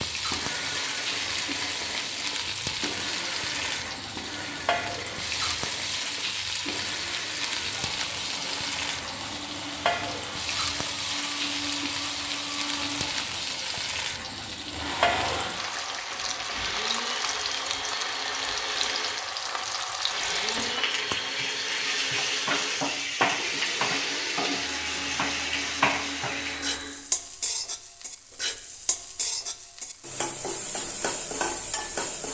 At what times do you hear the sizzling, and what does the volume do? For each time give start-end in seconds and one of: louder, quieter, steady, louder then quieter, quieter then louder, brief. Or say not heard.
0.0-32.2 steady.